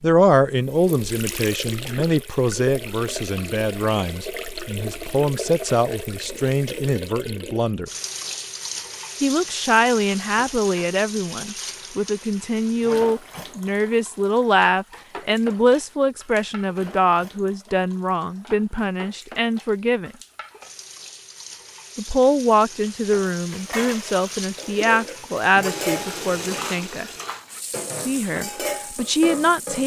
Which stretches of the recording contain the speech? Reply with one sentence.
You can hear the speech from 0.0 to 7.9 s, from 9.2 to 20.1 s, from 21.9 to 27.1 s and from 28.1 to 29.8 s.